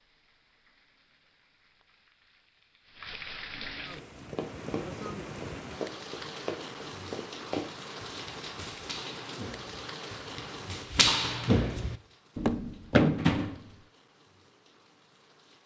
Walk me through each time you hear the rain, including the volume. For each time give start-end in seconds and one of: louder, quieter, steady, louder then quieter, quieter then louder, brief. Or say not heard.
0.0-15.6 louder then quieter.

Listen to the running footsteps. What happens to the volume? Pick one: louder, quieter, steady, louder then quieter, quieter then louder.
quieter then louder.